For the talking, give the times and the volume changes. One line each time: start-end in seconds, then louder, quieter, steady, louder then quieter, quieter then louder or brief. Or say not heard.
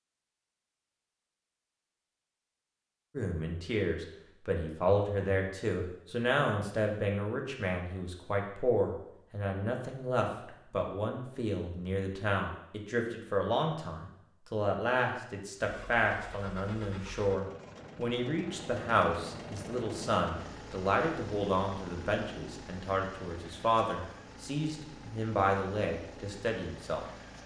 3.1-27.1 steady.